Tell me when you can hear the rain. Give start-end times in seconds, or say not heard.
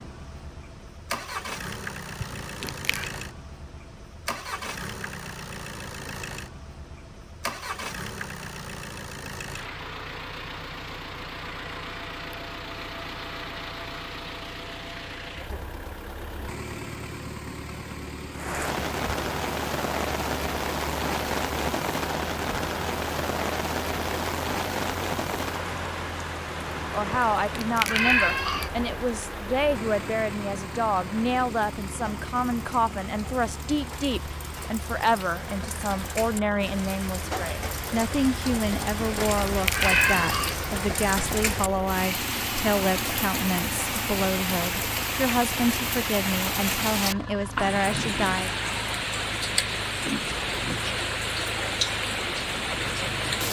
18.4-53.4.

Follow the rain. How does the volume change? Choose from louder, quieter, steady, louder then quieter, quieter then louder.
quieter then louder.